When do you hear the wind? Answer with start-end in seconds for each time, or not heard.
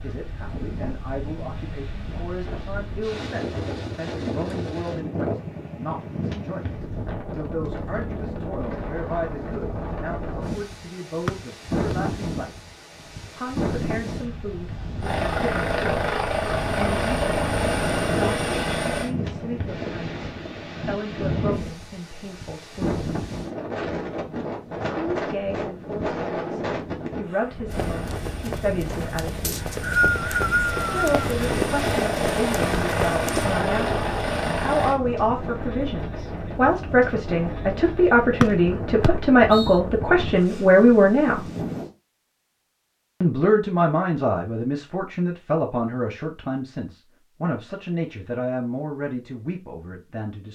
0.0-41.9.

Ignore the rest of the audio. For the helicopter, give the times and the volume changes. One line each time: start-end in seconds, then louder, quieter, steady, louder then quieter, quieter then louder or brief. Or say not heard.
15.0-19.1 steady
27.6-35.0 louder.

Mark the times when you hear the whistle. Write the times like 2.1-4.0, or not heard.
11.2-11.9, 29.4-31.1, 38.4-39.7.